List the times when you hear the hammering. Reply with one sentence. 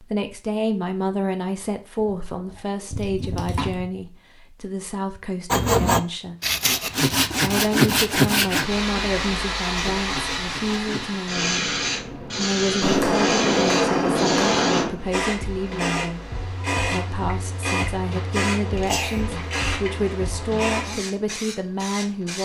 The hammering can be heard from 12.8 to 14.9 s.